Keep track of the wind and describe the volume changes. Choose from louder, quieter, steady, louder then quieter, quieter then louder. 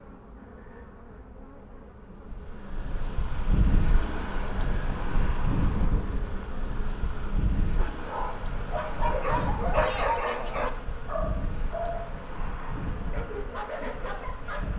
quieter.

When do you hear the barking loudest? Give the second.
10 s.